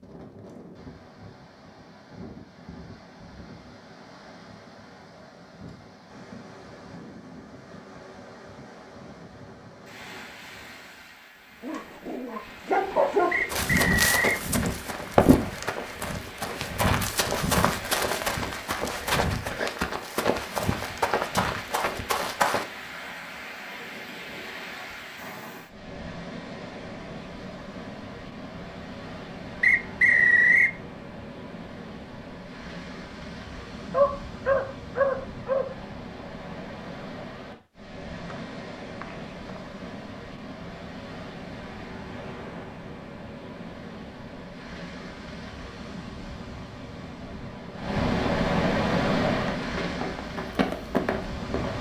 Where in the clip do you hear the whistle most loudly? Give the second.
30 s.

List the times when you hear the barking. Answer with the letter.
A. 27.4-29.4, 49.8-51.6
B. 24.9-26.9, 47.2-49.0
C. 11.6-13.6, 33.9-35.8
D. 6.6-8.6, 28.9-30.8
C.